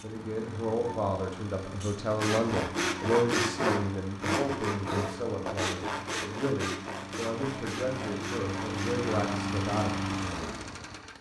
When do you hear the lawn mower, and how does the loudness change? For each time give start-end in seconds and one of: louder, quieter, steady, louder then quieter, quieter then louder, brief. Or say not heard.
0.0-11.1 louder.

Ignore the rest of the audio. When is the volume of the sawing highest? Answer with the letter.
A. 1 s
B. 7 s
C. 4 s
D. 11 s
C.